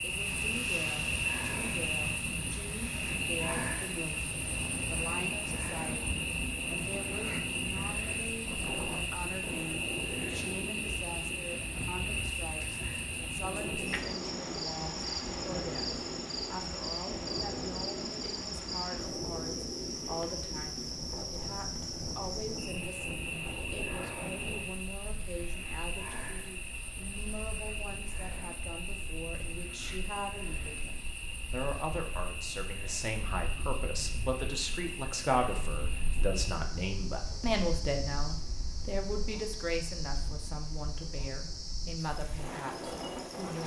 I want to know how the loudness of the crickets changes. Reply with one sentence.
The volume of the crickets goes down.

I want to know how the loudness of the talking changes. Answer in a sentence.
The volume of the talking goes up.